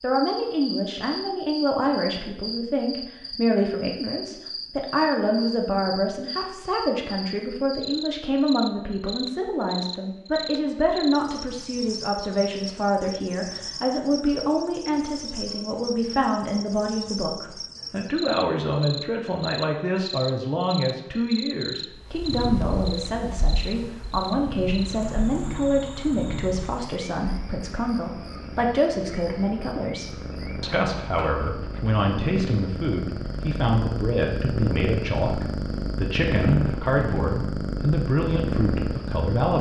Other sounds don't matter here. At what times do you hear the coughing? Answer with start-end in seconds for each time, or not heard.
not heard.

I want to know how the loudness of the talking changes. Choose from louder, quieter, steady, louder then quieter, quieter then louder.
steady.